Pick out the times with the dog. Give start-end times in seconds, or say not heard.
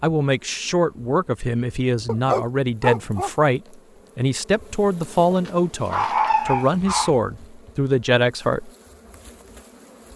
2.0-3.3, 5.3-7.1.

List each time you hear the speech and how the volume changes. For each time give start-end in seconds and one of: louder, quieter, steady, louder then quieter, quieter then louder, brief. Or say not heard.
0.0-8.7 steady.